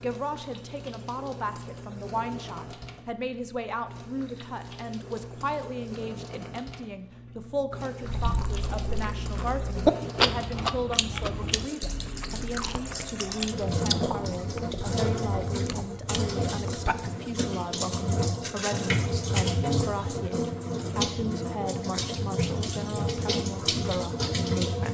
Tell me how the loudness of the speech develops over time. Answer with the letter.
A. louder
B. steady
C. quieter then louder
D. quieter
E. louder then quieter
B.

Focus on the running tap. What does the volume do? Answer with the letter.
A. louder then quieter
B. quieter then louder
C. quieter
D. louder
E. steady
D.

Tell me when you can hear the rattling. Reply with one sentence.
You can hear the rattling from 18.4 to 19.0 s.